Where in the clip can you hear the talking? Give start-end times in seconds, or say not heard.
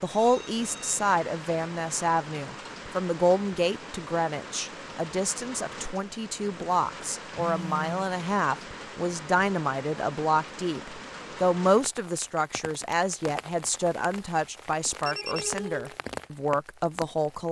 0.0-17.4.